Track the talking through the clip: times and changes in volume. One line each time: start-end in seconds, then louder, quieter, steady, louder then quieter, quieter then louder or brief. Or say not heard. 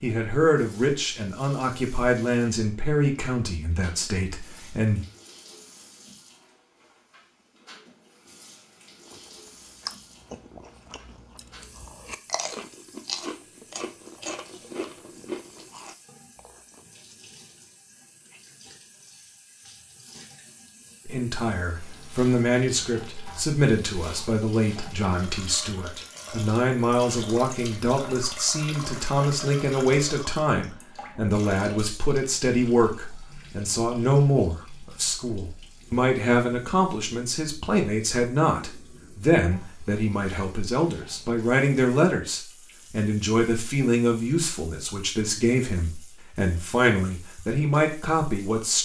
0.0-5.0 quieter
21.1-48.7 steady.